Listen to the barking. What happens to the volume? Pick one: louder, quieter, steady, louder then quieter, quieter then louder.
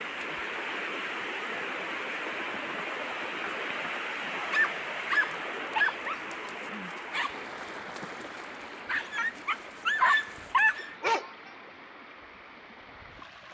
quieter then louder.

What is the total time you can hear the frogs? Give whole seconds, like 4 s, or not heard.
not heard.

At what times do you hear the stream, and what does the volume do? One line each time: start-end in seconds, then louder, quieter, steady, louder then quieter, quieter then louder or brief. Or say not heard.
0.0-13.4 quieter.